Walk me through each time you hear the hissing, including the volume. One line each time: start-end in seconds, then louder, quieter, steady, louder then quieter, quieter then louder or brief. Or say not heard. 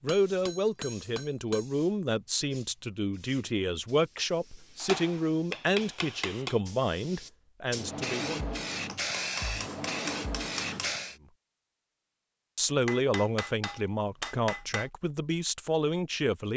0.1-11.2 louder.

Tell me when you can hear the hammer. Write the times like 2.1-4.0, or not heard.
0.1-1.6, 4.8-6.6, 8.8-10.9, 12.8-14.9.